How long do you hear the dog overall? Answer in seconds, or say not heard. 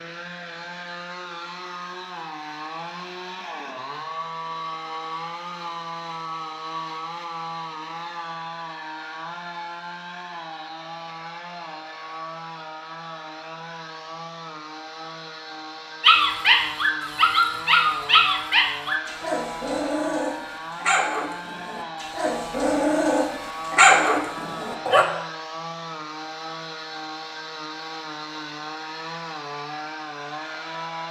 9 s.